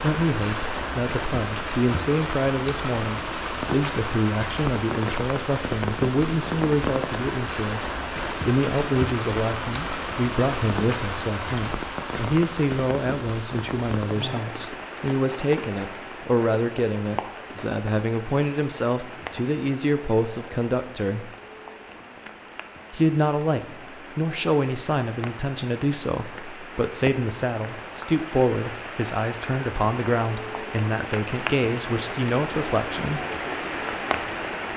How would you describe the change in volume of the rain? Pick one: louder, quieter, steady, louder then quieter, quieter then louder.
quieter then louder.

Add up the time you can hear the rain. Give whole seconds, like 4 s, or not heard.
35 s.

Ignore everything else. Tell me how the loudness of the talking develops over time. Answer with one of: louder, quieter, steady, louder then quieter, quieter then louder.
steady.